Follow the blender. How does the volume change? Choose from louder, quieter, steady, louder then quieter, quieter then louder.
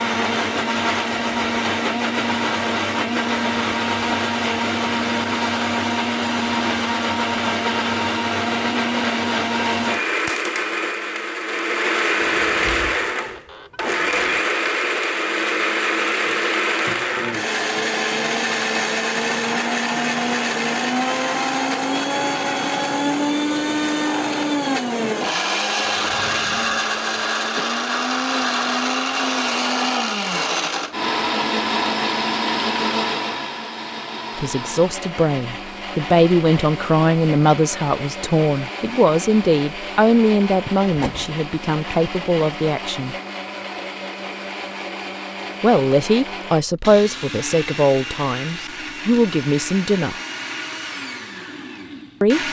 quieter.